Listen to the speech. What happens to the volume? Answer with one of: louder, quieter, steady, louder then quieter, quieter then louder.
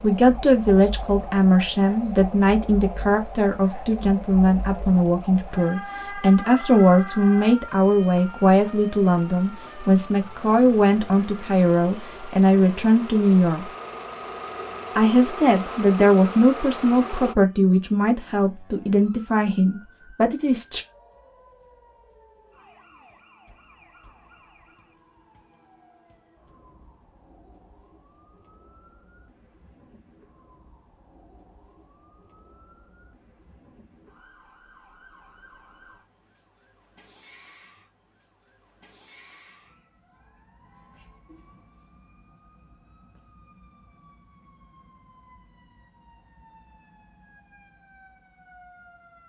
steady.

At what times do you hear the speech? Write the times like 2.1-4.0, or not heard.
0.0-13.7, 14.9-20.9.